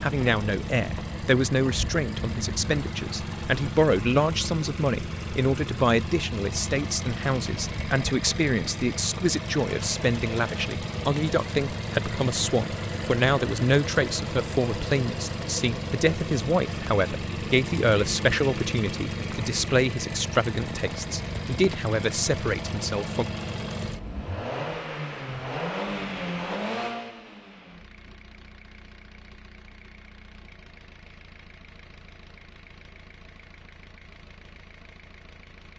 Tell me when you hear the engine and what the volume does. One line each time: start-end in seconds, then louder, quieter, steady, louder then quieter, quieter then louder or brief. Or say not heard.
0.0-35.7 quieter.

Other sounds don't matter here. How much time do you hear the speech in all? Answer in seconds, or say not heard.
23 s.